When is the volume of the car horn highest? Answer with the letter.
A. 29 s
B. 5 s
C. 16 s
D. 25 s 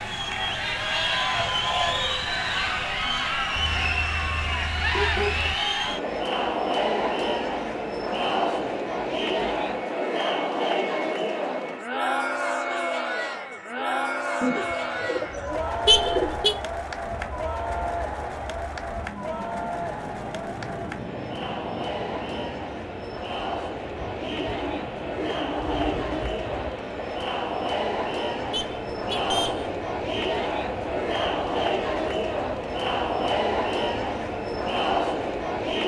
C.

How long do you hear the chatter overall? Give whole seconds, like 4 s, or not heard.
36 s.